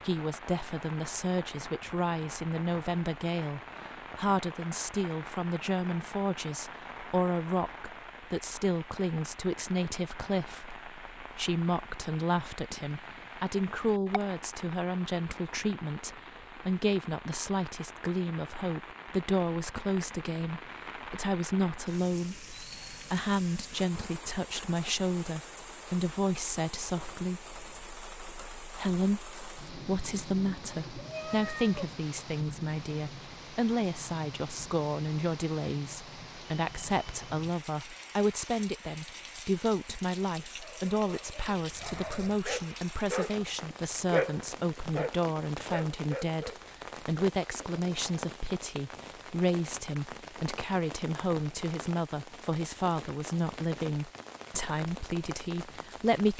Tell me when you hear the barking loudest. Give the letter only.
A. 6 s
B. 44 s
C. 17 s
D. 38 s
B.